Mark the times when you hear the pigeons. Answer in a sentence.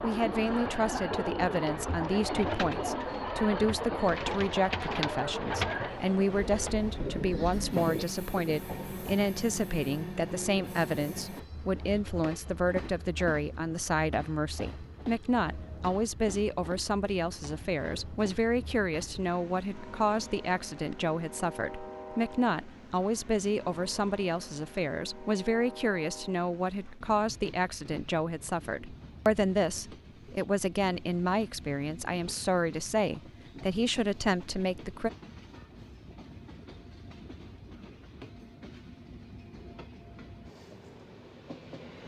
You can hear the pigeons from 0.0 to 8.1 s.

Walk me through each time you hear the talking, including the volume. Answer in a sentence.
You can hear the talking from 0.0 to 35.1 s, at a steady volume.